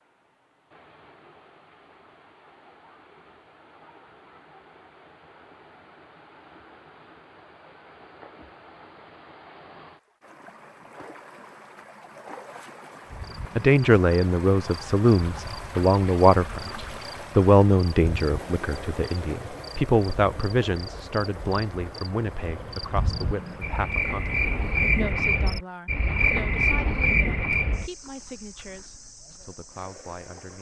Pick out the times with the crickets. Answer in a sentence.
The crickets can be heard from 13.1 to 30.5 s.